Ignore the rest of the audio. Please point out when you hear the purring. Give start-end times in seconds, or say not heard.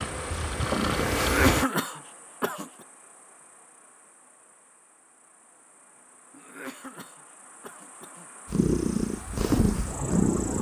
0.0-1.6, 8.4-10.5.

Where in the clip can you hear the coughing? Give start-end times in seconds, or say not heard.
1.1-2.7, 6.3-8.3.